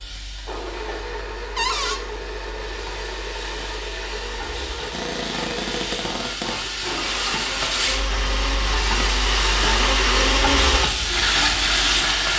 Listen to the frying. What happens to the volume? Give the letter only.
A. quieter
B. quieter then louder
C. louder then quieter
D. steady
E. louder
E.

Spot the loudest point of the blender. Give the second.
10 s.